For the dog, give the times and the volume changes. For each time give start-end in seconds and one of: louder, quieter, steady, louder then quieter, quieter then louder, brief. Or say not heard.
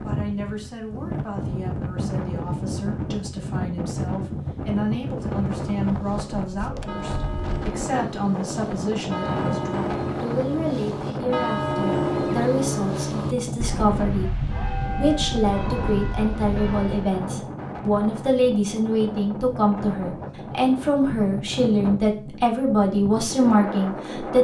not heard.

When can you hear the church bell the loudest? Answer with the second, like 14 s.
12 s.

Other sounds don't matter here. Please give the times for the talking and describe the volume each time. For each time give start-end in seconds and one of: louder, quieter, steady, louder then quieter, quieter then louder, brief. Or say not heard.
0.0-14.3 louder
15.0-24.3 steady.